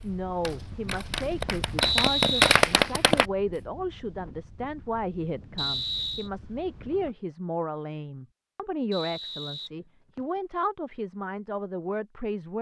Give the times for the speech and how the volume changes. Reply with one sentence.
You can hear the speech from 0.0 to 12.5 s, at a steady volume.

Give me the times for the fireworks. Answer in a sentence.
The fireworks can be heard from 0.0 to 3.2 s.